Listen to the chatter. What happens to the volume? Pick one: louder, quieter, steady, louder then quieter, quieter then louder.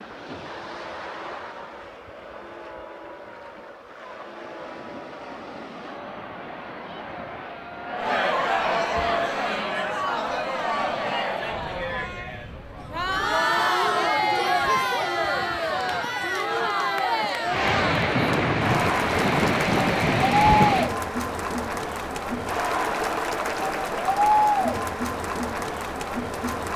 louder.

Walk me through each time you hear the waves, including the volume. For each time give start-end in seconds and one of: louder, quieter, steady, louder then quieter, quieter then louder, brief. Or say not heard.
0.0-20.9 louder.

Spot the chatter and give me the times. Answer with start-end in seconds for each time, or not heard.
0.3-26.7.